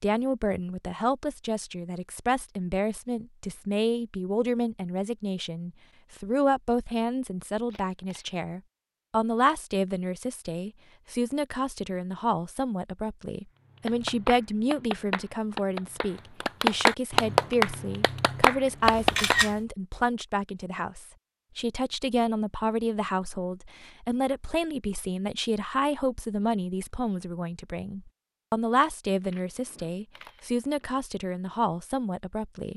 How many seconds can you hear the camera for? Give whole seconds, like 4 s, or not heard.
3 s.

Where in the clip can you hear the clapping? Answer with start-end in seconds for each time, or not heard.
13.8-19.4.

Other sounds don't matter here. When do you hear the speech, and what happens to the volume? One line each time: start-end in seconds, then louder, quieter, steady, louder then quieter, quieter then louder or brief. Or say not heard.
0.0-32.7 steady.